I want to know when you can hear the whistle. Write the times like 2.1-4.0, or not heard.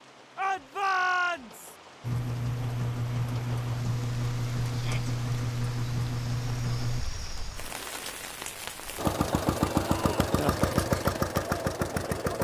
not heard.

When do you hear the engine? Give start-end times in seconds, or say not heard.
2.0-7.0, 8.9-12.4.